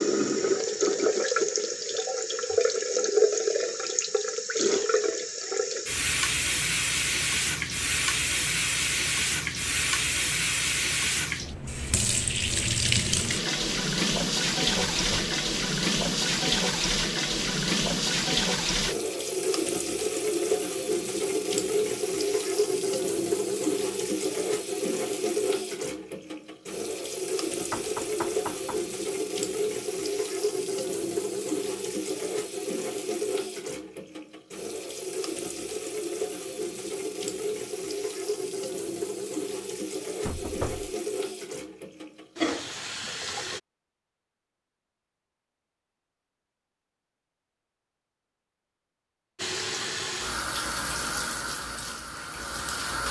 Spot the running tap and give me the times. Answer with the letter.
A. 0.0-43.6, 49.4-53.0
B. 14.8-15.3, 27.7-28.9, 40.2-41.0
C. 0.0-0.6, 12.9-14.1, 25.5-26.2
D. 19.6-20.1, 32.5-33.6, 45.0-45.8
A.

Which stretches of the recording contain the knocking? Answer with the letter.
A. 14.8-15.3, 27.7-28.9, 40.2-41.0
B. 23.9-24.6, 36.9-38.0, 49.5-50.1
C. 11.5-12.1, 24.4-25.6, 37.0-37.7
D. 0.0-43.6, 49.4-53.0
A.